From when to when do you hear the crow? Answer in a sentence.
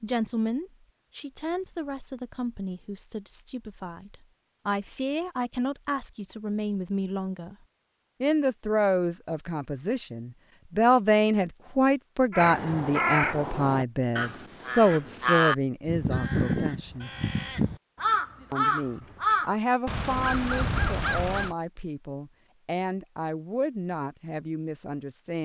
You can hear the crow from 12.3 to 21.6 s.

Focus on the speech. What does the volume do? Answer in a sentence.
The loudness of the speech goes up, then down.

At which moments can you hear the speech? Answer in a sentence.
You can hear the speech from 0.0 to 7.5 s, from 8.2 to 17.1 s and from 18.5 to 25.4 s.